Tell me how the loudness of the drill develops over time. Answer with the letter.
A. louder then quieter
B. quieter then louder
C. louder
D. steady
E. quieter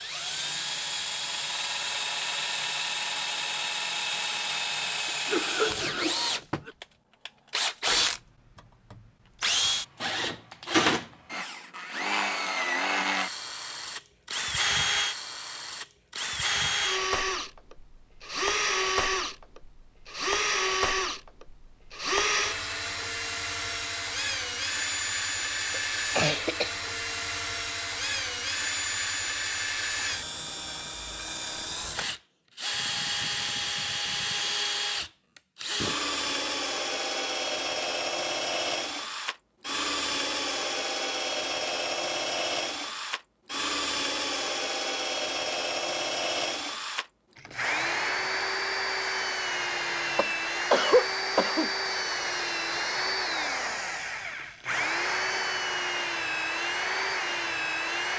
D.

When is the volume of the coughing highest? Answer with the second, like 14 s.
51 s.